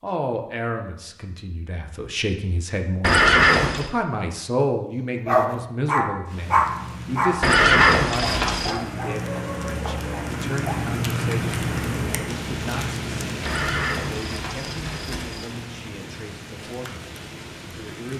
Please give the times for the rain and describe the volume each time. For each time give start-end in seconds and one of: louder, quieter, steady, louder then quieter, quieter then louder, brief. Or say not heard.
6.2-18.1 louder then quieter.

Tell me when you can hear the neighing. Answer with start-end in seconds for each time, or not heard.
3.0-3.9, 7.4-8.8, 13.4-15.4.